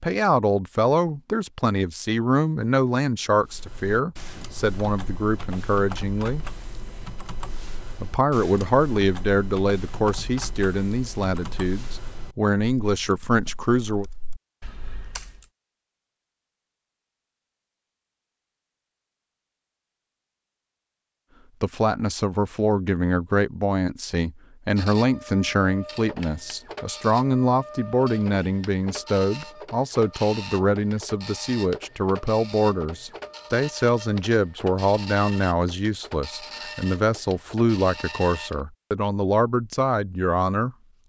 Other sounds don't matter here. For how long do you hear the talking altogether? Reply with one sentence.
You can hear the talking for 32 seconds altogether.